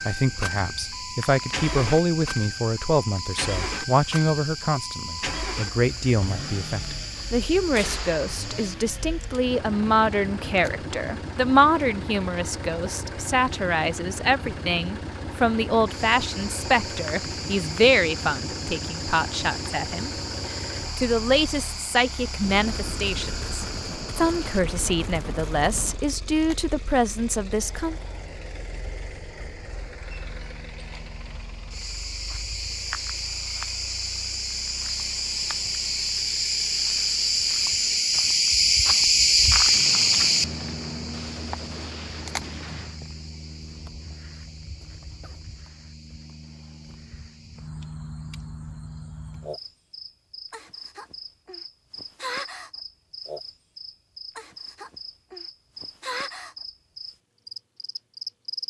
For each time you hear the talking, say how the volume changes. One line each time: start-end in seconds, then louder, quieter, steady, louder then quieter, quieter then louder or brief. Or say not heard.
0.1-27.9 steady.